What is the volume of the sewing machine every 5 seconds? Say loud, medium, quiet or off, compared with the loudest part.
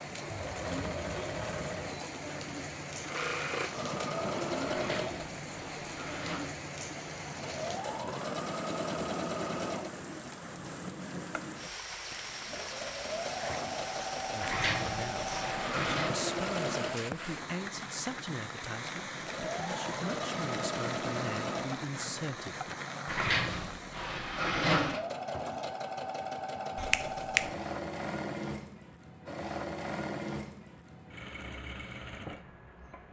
loud, loud, loud, loud, loud, loud, medium.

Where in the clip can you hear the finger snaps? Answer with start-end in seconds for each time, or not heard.
26.8-27.5.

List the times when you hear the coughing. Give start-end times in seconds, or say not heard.
not heard.